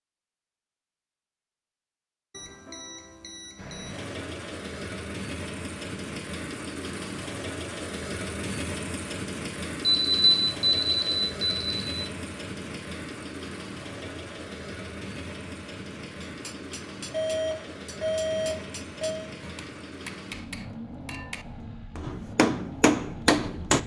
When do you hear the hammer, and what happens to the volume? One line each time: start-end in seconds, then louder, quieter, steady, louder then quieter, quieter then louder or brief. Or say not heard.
16.2-23.8 louder.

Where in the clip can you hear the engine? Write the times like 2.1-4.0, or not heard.
3.5-23.8.